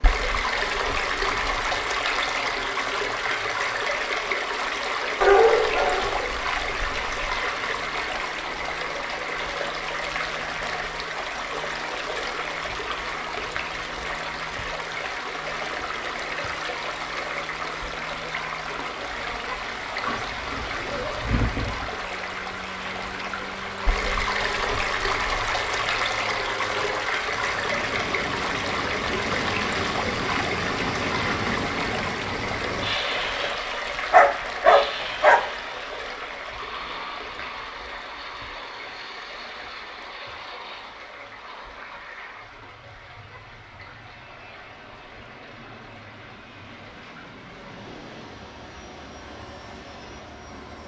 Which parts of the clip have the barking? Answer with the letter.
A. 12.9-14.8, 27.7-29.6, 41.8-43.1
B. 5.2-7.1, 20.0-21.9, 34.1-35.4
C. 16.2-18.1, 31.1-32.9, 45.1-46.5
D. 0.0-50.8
B.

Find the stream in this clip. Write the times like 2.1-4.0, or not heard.
0.0-50.8.